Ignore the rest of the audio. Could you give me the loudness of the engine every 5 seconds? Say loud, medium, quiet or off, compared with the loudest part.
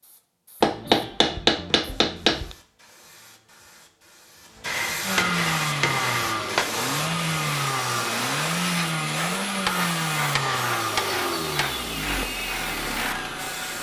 off, loud, loud.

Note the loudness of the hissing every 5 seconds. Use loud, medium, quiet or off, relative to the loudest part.
medium, loud, loud.